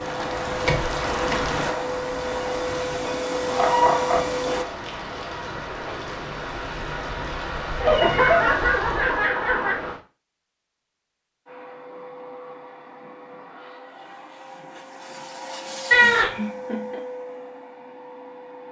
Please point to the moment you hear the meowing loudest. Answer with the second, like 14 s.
16 s.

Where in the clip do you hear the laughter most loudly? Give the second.
8 s.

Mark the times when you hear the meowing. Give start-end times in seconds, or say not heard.
3.5-4.1, 7.9-8.6, 15.9-16.3.